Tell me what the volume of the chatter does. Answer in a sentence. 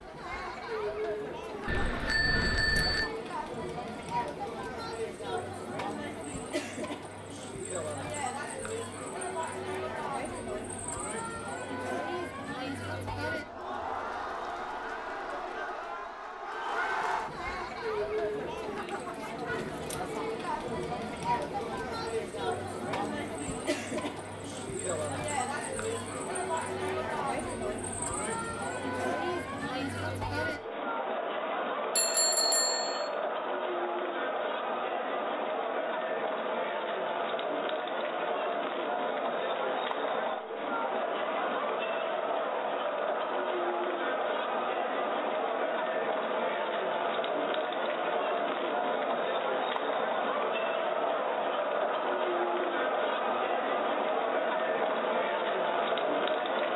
The volume of the chatter goes up.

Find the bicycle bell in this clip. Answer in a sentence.
The bicycle bell can be heard from 1.6 to 3.1 s and from 31.9 to 33.1 s.